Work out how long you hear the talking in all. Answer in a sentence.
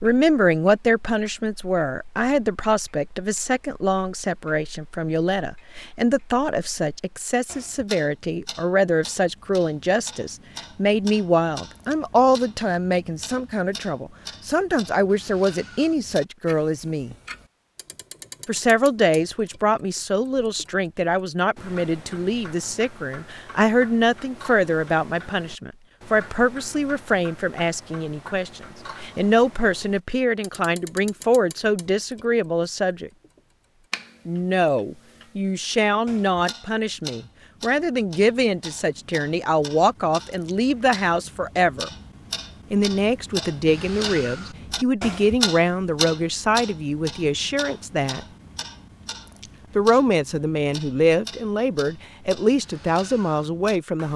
You can hear the talking for 49 seconds altogether.